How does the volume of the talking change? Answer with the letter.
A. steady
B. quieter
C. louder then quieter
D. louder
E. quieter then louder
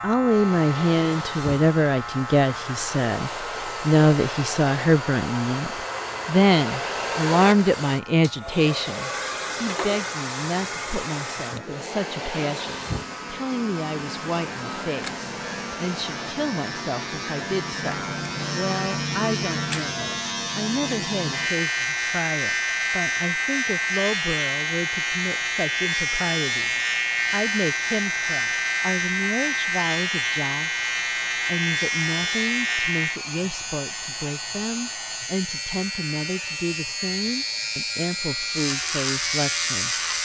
B.